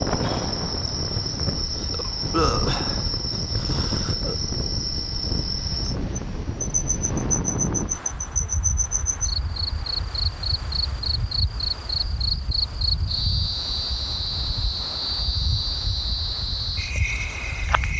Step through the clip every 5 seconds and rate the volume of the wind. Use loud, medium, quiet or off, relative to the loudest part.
loud, loud, medium, medium.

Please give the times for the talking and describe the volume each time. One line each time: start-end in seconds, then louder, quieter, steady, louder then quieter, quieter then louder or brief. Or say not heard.
not heard.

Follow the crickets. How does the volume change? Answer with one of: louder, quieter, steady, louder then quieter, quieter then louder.
steady.